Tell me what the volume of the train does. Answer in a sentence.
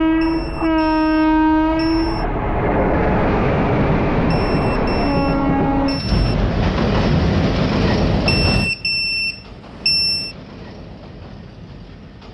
The loudness of the train goes down.